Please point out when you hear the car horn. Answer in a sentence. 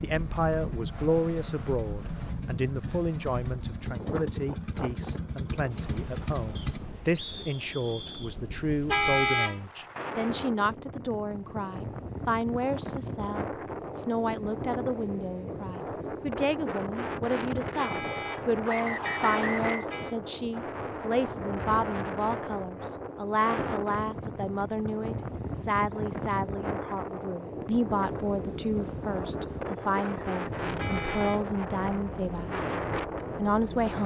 You can hear the car horn from 8.6 to 9.6 s, from 17.6 to 20.1 s and from 30.6 to 31.4 s.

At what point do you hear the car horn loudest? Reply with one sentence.
The volume of the car horn peaks at 9 seconds.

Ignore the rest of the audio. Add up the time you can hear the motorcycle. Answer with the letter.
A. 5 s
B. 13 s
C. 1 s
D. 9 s
B.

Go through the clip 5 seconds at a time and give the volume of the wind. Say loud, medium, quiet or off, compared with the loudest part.
medium, medium, loud, loud, loud, loud, loud.